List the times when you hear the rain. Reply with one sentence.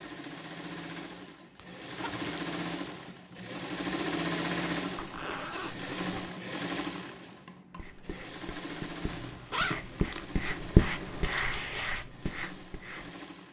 The rain can't be heard in this clip.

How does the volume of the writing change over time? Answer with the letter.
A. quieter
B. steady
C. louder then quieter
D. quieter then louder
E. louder
C.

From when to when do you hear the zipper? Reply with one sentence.
The zipper can be heard from 1.6 to 2.4 s, from 5.0 to 6.3 s and from 9.1 to 10.3 s.